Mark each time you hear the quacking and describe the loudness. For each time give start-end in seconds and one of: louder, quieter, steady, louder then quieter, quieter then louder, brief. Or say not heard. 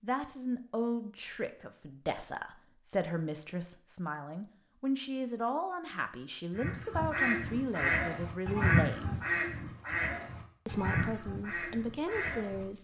6.5-12.7 quieter.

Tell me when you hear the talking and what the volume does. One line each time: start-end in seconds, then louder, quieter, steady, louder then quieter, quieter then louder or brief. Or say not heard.
0.0-9.2 steady
10.7-12.7 brief.